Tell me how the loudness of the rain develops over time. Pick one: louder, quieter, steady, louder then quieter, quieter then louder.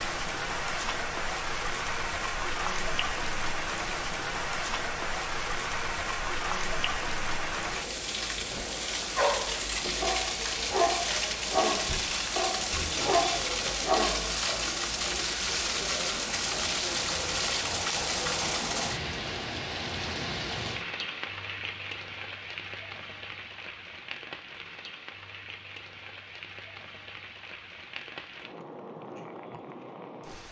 quieter.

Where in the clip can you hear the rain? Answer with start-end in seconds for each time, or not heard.
0.0-30.4.